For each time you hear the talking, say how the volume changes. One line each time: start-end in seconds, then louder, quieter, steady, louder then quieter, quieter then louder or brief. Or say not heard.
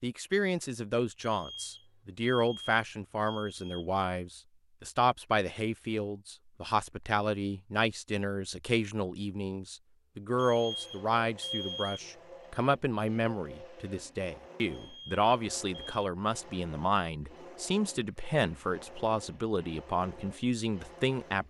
0.0-21.4 steady.